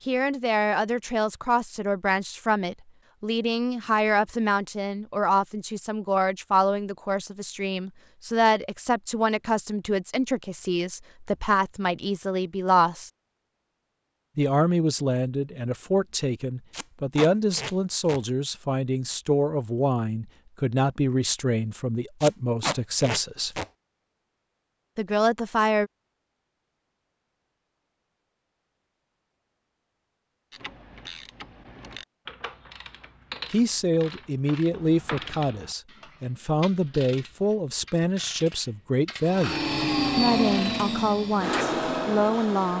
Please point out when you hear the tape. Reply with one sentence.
You can hear the tape from 16.7 to 18.2 s and from 22.2 to 23.6 s.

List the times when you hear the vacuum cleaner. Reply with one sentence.
The vacuum cleaner can be heard from 39.2 to 42.7 s.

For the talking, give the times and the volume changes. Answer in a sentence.
The talking can be heard from 0.1 to 13.1 s, at a steady volume; from 14.3 to 23.6 s, at a steady volume; briefly from 24.9 to 25.9 s; and from 33.5 to 42.7 s, at a steady volume.